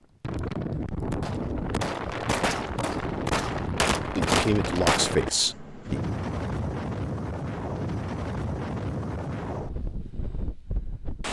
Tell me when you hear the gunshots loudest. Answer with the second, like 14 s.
4 s.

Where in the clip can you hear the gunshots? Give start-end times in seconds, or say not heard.
1.1-5.5.